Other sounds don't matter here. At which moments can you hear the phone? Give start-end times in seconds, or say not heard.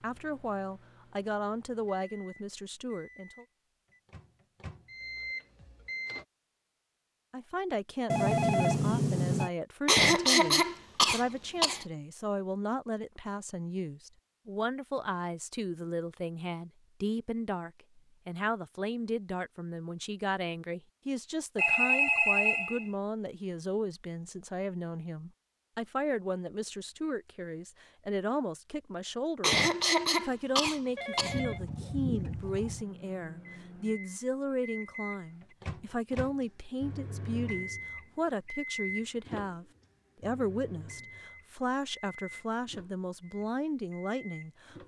8.1-9.5, 21.6-22.9, 30.9-32.9.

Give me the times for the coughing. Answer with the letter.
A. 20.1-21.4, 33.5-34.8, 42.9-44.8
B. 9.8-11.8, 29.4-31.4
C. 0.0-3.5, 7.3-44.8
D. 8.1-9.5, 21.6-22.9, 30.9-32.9
B.